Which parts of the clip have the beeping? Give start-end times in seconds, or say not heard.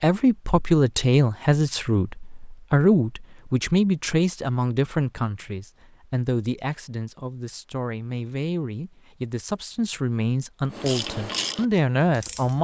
not heard.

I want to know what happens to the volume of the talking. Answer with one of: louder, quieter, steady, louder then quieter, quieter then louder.
quieter then louder.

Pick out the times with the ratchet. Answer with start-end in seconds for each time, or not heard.
10.7-12.5.